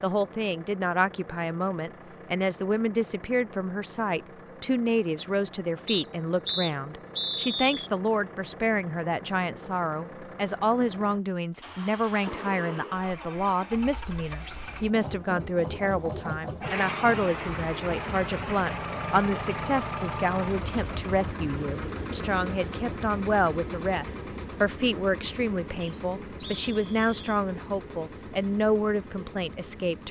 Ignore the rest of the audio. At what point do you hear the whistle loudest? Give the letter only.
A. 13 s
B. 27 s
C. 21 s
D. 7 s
D.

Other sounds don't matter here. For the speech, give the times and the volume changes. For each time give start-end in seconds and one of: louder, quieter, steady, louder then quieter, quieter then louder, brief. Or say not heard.
0.0-30.0 steady.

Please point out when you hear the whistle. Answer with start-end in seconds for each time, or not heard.
5.8-7.9, 25.8-27.3.